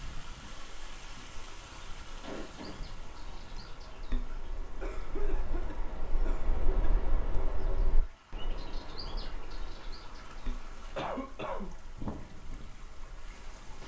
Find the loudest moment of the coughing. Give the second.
11 s.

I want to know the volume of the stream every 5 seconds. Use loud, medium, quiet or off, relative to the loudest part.
loud, medium, loud.